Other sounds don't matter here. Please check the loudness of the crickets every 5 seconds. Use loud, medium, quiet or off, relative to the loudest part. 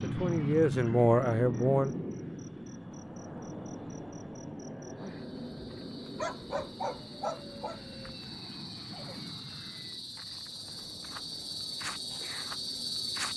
quiet, medium, loud.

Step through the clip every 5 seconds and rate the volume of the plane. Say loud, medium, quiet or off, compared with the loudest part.
loud, medium, quiet.